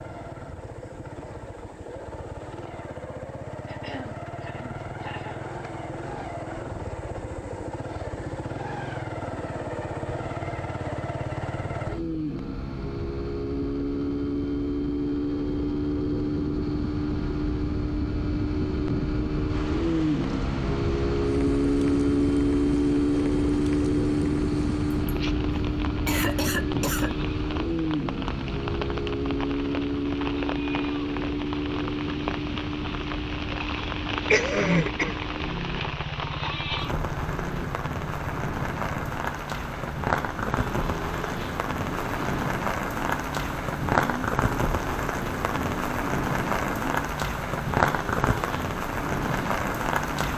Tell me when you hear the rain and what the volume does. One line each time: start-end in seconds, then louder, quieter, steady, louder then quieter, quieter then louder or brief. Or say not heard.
19.4-50.3 louder.